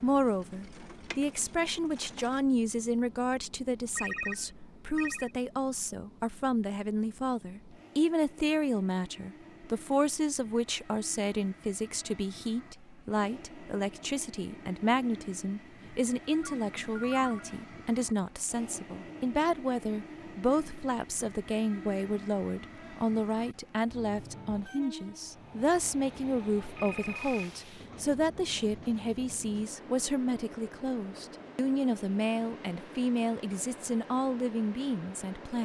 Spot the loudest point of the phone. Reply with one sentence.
The volume of the phone peaks at 4 seconds.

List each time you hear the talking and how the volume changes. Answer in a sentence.
You can hear the talking from 0.0 to 35.6 s, at a steady volume.